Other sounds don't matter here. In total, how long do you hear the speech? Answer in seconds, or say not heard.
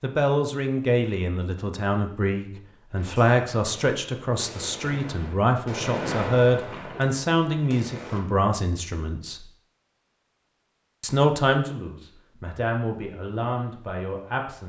13 s.